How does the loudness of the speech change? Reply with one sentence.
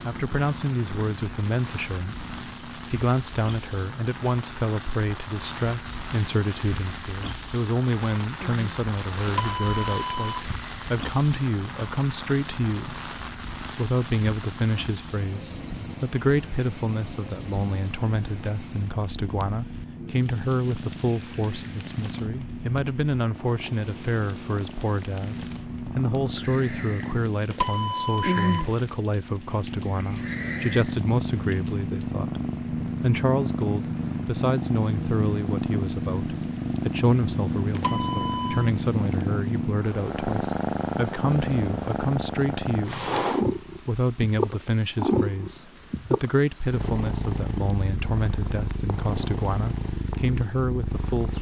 The loudness of the speech stays about the same.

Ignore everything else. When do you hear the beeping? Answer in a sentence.
The beeping can be heard from 9.2 to 10.5 s, from 27.5 to 28.7 s and from 37.8 to 38.7 s.